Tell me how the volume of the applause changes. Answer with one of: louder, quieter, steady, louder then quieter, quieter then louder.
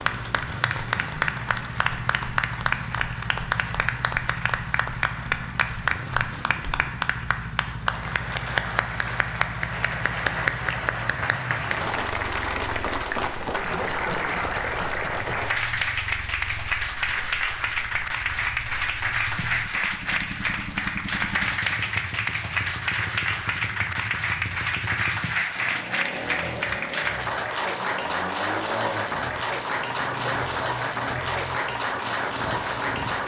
steady.